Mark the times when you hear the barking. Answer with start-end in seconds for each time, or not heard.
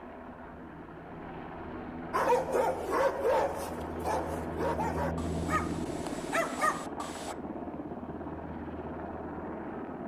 2.1-7.3.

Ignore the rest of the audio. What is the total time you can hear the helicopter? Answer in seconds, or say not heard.
10 s.